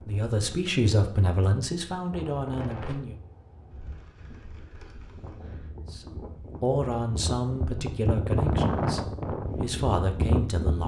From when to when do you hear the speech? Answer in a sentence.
The speech can be heard from 0.0 to 3.1 s and from 5.9 to 10.8 s.